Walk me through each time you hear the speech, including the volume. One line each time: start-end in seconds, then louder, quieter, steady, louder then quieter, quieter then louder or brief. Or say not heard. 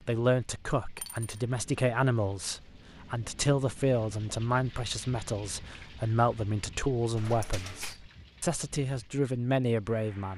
0.1-10.3 steady.